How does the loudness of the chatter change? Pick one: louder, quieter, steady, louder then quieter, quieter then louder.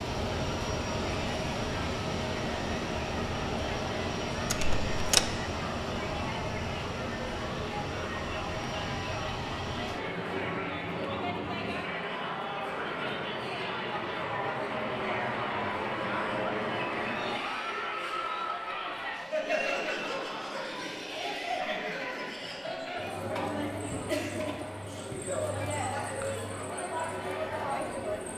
louder.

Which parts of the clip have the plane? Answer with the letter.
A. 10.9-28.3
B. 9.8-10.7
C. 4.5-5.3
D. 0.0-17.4
D.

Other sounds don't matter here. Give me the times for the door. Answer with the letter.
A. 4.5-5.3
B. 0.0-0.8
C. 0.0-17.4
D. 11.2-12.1
A.